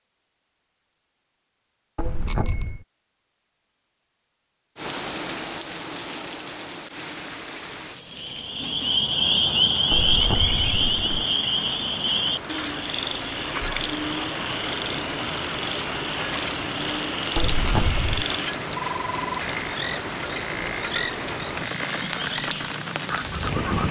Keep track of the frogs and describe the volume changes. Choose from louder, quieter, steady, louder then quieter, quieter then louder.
quieter.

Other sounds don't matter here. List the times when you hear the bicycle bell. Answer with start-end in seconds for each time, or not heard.
1.9-2.8, 9.9-11.2, 17.4-18.2.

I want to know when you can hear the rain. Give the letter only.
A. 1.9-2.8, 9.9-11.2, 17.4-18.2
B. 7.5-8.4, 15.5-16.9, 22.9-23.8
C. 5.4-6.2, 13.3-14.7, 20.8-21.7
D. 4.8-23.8
D.